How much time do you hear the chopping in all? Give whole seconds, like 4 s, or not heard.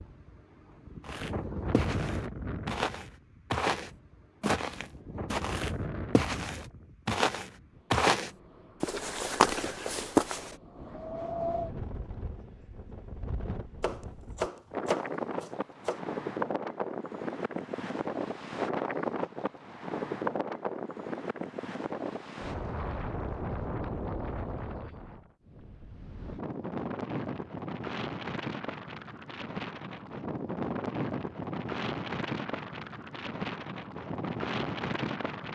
2 s.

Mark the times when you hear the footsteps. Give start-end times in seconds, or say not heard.
1.0-10.6.